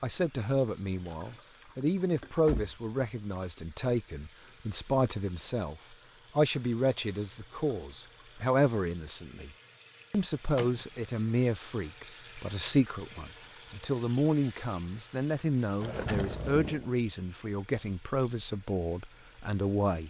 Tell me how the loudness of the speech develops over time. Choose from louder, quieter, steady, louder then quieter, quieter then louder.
steady.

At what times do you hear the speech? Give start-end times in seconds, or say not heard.
0.0-9.5, 10.1-20.0.